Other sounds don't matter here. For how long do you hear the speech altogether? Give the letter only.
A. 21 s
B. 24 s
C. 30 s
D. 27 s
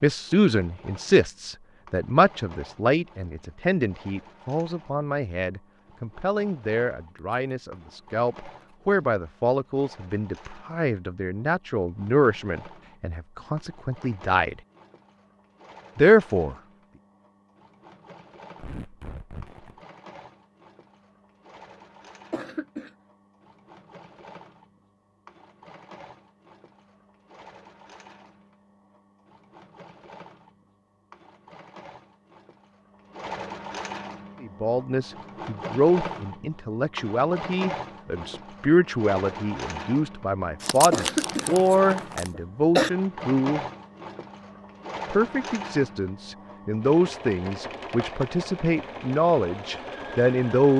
C.